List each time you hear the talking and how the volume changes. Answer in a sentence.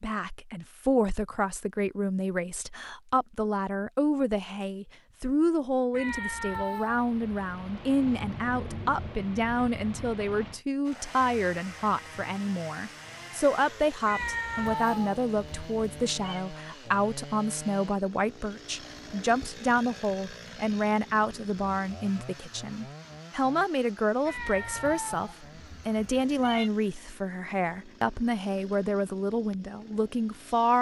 You can hear the talking from 0.0 to 30.7 s, at a steady volume.